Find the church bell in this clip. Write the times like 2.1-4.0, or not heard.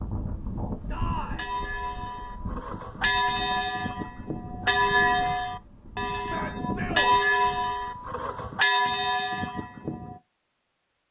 1.1-10.2.